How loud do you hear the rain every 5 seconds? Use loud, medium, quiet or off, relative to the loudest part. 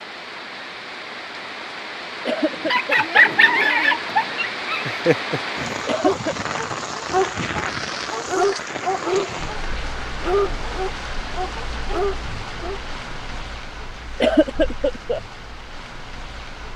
loud, loud, medium, medium.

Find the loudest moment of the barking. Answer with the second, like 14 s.
3 s.